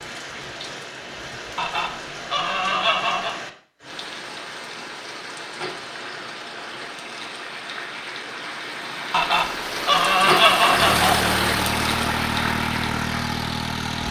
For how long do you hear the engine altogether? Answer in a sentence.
The engine can be heard for 3 seconds in total.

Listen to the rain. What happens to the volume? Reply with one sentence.
The loudness of the rain goes up.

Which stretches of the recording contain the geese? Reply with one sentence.
The geese can be heard from 1.6 to 3.4 s and from 9.1 to 11.2 s.